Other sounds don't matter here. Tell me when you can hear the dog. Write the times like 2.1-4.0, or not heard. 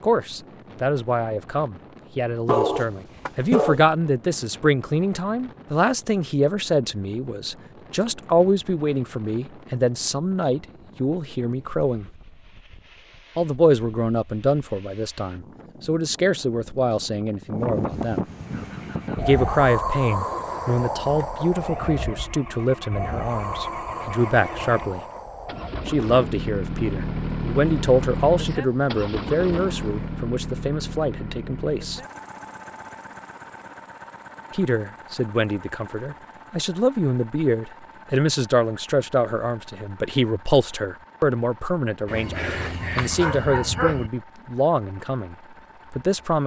2.5-3.8, 42.0-44.1.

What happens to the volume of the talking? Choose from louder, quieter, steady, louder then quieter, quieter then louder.
steady.